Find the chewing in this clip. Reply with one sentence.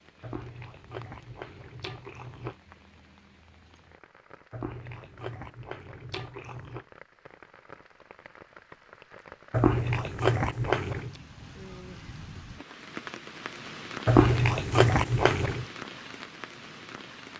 The chewing can be heard from 0.2 to 2.5 s, from 4.5 to 6.8 s, from 9.5 to 11.2 s and from 14.1 to 15.7 s.